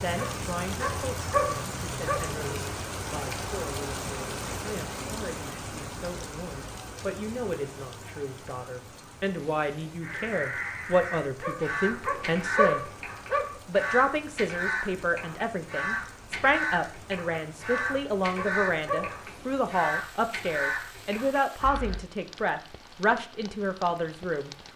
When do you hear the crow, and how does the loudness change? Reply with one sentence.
You can hear the crow from 10.0 to 22.0 s, at a steady volume.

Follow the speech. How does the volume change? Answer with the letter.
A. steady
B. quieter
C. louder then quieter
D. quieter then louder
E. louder
E.